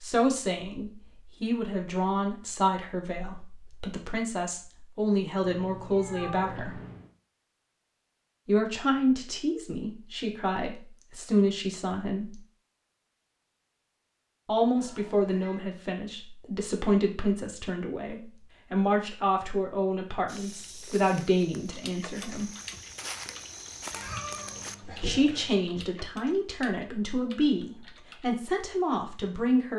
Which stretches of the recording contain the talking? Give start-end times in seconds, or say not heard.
0.0-6.8, 8.4-12.4, 14.4-22.5, 24.9-29.7.